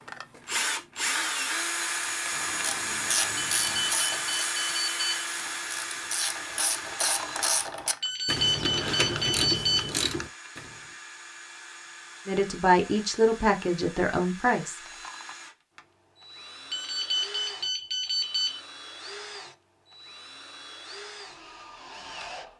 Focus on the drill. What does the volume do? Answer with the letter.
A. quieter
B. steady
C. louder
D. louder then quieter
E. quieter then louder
A.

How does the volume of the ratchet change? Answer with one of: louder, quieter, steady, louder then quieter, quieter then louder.
quieter then louder.